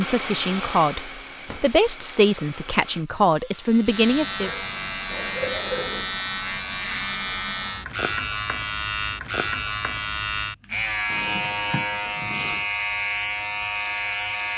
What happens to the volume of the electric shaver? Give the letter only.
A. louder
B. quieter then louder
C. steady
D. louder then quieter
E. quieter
C.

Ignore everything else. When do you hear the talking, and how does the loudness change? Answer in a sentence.
You can hear the talking from 0.0 to 4.5 s, at a steady volume.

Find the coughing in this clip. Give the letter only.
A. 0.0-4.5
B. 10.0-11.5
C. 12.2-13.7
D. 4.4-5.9
D.